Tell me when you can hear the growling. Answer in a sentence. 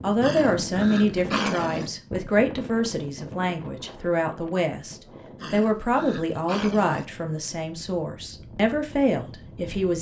You can hear the growling from 0.2 to 1.9 s and from 5.4 to 7.0 s.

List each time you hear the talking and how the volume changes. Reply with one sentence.
You can hear the talking from 0.0 to 9.9 s, at a steady volume.